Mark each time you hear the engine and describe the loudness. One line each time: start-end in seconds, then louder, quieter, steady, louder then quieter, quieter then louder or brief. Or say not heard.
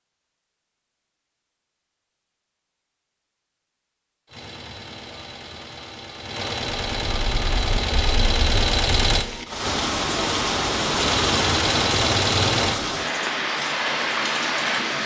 4.2-9.2 louder
10.9-12.8 brief.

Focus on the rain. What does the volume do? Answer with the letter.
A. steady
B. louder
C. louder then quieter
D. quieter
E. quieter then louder
B.